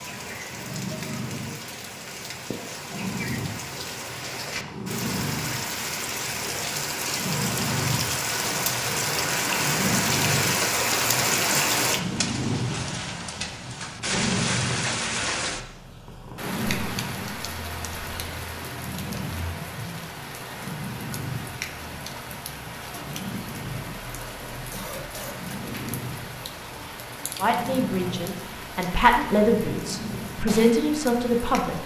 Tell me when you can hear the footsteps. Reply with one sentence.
The footsteps can't be heard in this clip.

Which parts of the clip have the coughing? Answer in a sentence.
You can hear the coughing from 24.7 to 25.6 s.